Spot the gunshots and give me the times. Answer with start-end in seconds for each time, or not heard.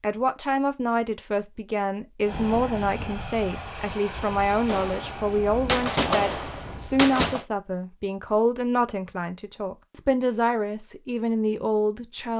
4.7-7.5.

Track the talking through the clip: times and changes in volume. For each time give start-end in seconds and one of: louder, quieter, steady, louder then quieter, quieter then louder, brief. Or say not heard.
0.0-12.3 steady.